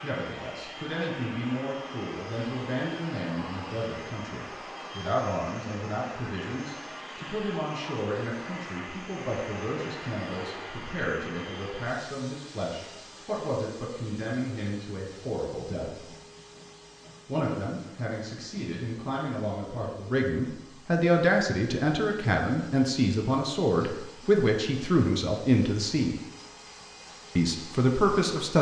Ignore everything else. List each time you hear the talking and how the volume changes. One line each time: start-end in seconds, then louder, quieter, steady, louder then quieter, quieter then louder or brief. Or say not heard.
0.0-16.1 steady
17.2-26.1 louder
27.4-28.5 brief.